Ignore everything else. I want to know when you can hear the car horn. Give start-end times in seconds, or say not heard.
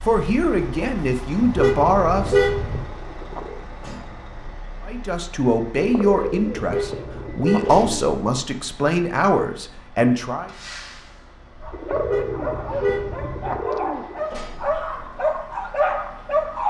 1.4-2.9, 6.5-7.8, 11.9-13.6.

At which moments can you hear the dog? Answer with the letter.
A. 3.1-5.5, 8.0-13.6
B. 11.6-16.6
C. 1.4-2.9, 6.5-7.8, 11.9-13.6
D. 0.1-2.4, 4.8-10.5
B.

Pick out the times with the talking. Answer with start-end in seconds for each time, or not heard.
0.1-2.4, 4.8-10.5.